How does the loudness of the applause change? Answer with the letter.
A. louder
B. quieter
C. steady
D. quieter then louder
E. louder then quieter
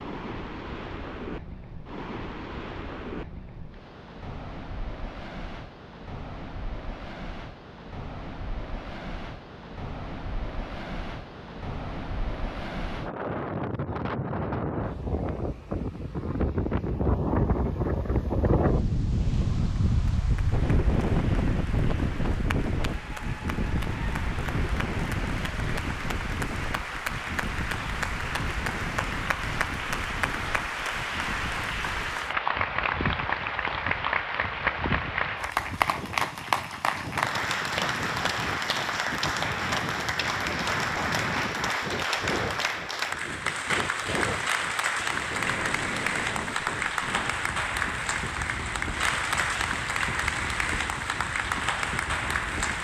A.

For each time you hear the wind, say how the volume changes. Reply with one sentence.
You can hear the wind from 0.0 to 52.7 s, getting louder then quieter.